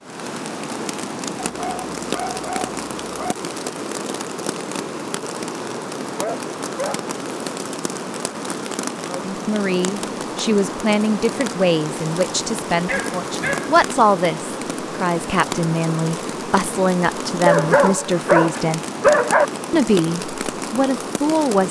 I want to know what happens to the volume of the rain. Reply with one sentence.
The volume of the rain stays about the same.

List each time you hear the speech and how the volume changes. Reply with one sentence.
You can hear the speech from 9.1 to 18.8 s, at a steady volume; and briefly from 19.7 to 21.6 s.